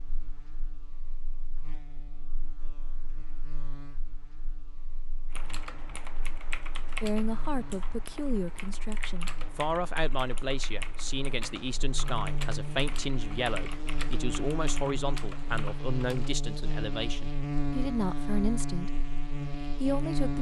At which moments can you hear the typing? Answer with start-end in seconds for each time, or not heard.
5.3-16.2.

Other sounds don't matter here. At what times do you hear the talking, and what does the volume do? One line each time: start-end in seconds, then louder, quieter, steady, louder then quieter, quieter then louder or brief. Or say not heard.
7.0-20.3 steady.